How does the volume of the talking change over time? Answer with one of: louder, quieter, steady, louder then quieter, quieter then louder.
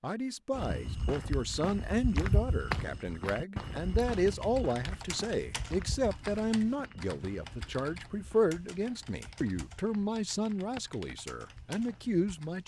steady.